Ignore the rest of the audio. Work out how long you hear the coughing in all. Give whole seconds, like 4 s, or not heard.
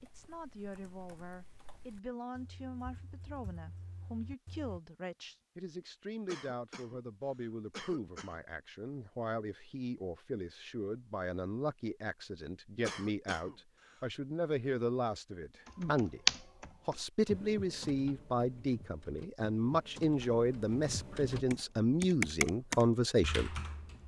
3 s.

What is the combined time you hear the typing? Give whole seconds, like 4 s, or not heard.
13 s.